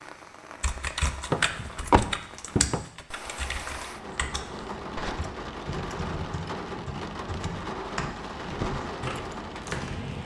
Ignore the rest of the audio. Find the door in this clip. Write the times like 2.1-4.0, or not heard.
1.3-2.9.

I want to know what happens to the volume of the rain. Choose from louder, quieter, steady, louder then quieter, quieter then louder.
louder.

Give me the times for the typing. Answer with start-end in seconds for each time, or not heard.
0.6-10.0.